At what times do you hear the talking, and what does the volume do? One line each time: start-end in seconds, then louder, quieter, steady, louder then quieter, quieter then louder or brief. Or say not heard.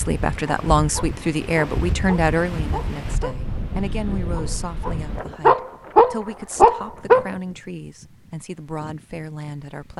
0.0-9.9 quieter.